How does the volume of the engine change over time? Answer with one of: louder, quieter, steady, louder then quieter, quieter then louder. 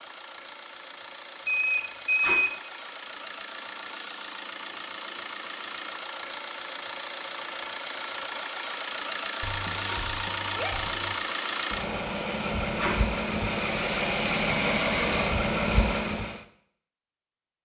louder.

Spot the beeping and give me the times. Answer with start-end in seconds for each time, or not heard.
1.4-2.5, 9.4-11.2.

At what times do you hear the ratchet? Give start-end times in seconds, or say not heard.
not heard.